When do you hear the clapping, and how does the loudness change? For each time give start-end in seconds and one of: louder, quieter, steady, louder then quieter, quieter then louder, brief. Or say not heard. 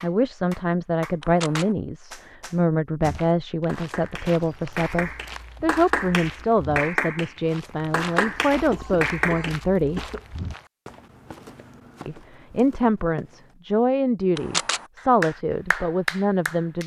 0.0-9.6 quieter then louder
14.9-16.8 brief.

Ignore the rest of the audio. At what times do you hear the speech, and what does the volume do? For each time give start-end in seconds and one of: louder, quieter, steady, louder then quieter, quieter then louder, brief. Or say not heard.
0.0-10.1 steady
12.1-16.8 steady.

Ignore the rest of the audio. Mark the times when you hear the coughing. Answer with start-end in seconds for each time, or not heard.
8.7-10.2.